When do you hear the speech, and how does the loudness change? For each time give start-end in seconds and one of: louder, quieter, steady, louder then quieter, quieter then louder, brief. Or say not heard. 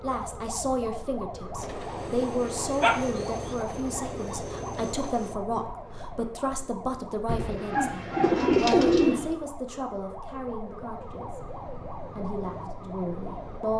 0.0-13.7 quieter.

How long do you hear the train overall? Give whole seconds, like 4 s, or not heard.
4 s.